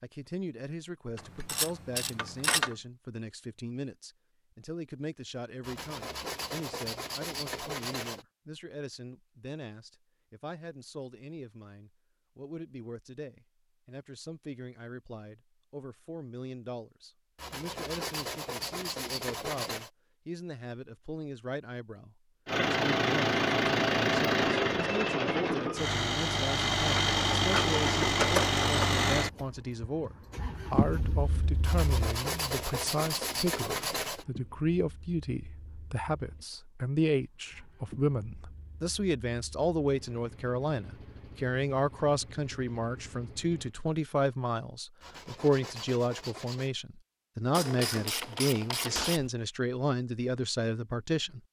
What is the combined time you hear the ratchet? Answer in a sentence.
The ratchet can be heard for 5 seconds in total.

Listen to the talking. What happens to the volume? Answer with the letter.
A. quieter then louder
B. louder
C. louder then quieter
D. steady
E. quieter
B.